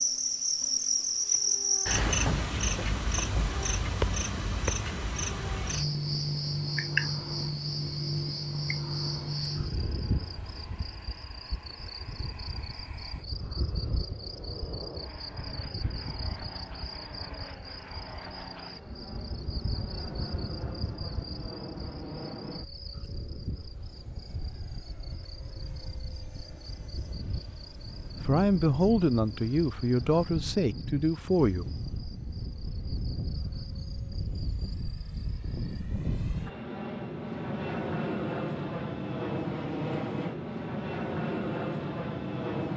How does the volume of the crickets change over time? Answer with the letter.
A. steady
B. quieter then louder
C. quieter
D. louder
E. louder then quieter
C.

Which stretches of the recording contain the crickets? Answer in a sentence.
You can hear the crickets from 0.0 to 35.8 s.